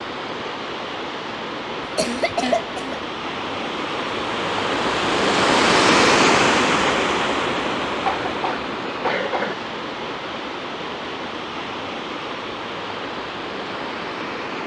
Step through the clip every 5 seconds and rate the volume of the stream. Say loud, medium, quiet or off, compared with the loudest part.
medium, loud, medium.